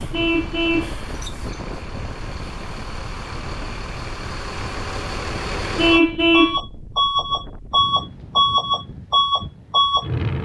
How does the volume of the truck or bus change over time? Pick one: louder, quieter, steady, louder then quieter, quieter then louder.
louder.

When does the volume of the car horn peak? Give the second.
6 s.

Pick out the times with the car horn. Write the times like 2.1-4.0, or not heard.
0.1-0.9, 5.8-6.6.